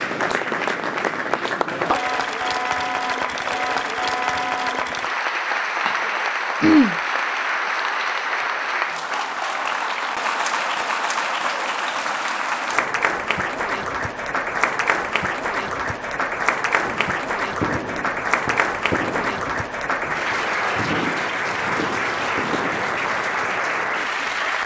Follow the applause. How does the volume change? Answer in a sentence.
The loudness of the applause stays about the same.